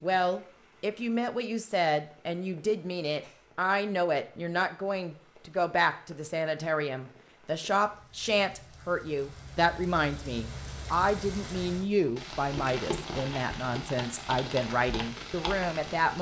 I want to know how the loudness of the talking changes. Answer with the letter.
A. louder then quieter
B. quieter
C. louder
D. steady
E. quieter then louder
D.